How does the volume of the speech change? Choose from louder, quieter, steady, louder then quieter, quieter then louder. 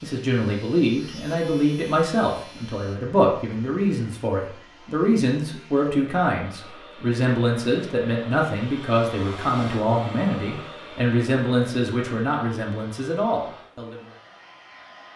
steady.